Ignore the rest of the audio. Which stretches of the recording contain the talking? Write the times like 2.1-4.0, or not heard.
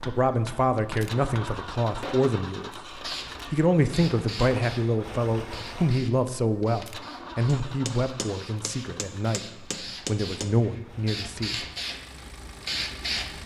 0.0-11.7.